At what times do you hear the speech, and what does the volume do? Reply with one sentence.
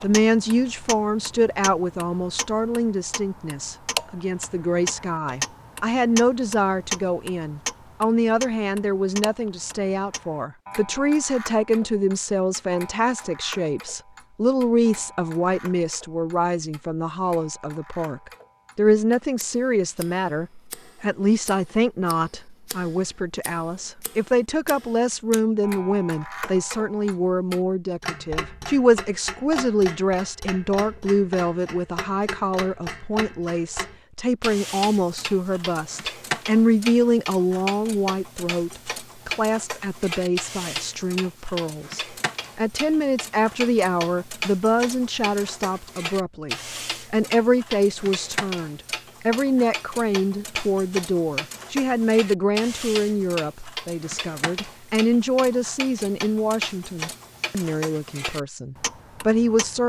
You can hear the speech from 0.0 to 59.8 s, at a steady volume.